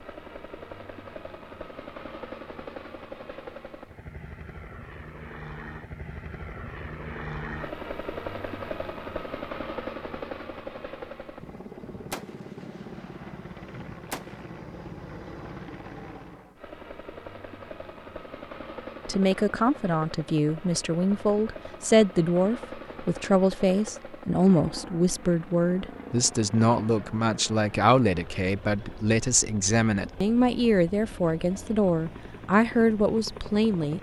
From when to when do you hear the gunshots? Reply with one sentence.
You can hear the gunshots from 11.3 to 14.4 s.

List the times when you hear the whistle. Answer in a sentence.
The whistle can't be heard in this clip.